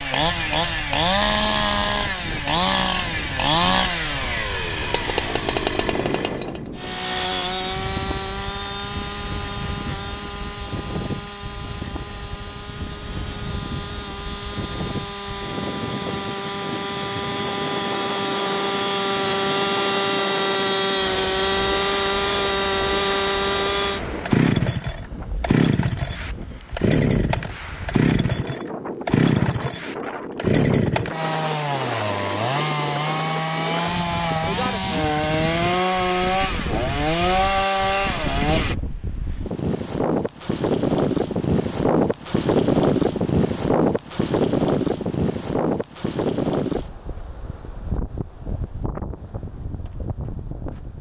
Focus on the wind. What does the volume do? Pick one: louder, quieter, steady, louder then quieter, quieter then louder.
louder.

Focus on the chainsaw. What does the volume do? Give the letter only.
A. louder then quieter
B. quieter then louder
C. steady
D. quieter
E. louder
B.